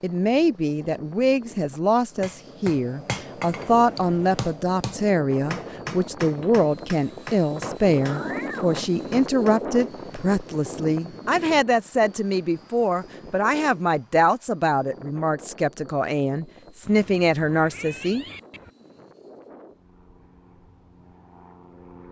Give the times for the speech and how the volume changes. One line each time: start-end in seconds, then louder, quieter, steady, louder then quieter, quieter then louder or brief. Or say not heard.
0.0-18.2 steady.